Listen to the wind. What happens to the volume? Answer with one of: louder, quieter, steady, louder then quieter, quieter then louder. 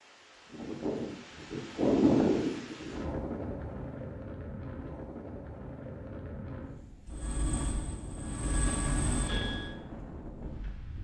quieter.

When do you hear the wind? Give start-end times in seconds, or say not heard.
0.0-11.0.